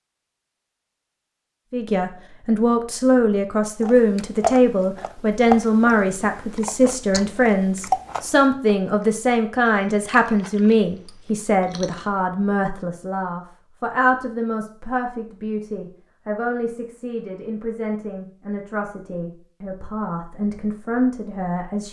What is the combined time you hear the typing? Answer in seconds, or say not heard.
not heard.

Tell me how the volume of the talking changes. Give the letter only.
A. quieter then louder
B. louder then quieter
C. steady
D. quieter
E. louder
D.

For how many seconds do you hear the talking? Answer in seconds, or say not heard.
20 s.